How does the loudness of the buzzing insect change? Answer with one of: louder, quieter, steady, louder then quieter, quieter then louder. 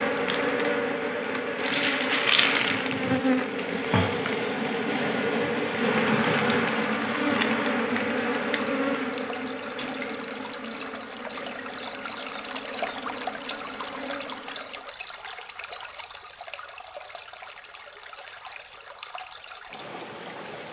quieter.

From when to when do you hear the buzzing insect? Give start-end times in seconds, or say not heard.
0.0-14.8.